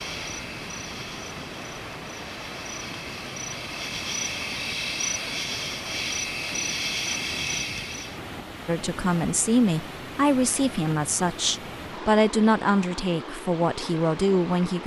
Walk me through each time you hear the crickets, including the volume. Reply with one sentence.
You can hear the crickets from 0.0 to 8.2 s, getting louder.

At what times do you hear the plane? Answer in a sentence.
You can't hear the plane here.